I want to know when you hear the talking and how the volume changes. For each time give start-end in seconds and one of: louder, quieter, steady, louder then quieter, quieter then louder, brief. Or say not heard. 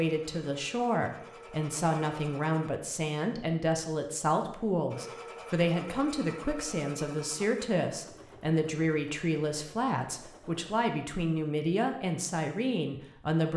0.0-13.5 steady.